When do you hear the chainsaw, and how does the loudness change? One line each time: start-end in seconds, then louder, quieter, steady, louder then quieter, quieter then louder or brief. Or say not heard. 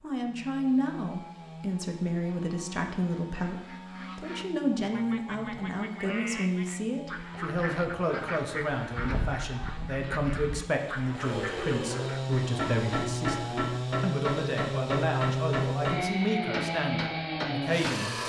0.1-18.2 louder.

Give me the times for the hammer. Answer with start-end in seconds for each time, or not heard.
12.4-18.0.